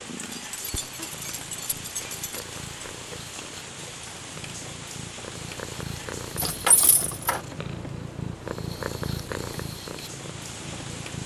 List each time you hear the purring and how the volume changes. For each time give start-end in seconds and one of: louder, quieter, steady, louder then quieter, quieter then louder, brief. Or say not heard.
0.0-11.2 louder.